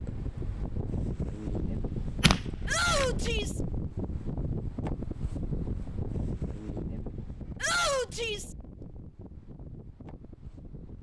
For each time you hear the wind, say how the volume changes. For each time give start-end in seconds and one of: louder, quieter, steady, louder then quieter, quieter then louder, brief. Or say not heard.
0.0-10.9 quieter.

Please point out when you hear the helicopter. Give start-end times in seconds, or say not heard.
not heard.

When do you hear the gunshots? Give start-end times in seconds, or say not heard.
1.4-3.2.